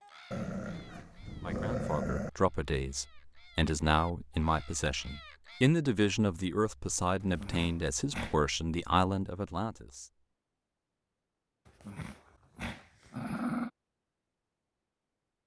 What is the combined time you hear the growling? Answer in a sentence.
The growling can be heard for 5 seconds in total.